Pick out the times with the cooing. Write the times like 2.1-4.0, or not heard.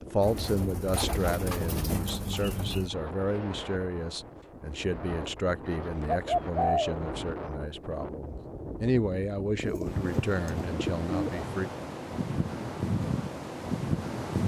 0.2-2.9, 6.0-7.0, 9.7-11.5.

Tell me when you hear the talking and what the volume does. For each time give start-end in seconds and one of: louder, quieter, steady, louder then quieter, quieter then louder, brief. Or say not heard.
0.0-11.7 steady.